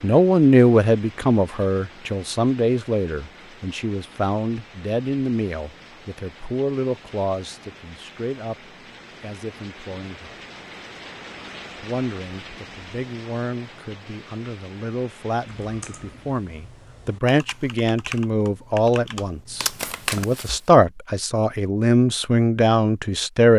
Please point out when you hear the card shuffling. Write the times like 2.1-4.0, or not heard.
19.6-20.6.